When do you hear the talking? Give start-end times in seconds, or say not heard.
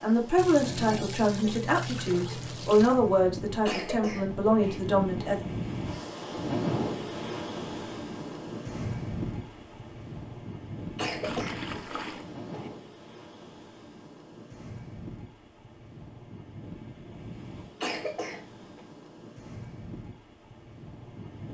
0.0-5.5.